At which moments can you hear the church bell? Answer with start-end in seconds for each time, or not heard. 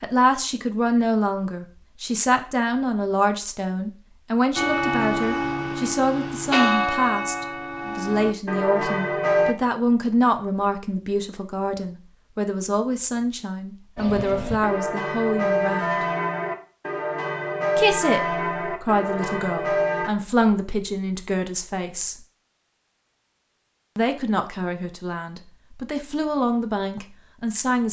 4.5-9.6, 13.9-20.1.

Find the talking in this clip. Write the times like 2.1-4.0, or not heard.
0.0-16.1, 17.8-22.1, 23.9-27.8.